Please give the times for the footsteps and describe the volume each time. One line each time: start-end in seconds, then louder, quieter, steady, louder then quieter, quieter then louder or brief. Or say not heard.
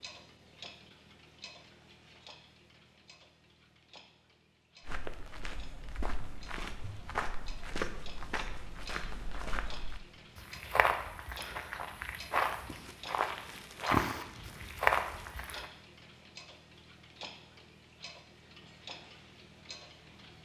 4.8-15.7 louder.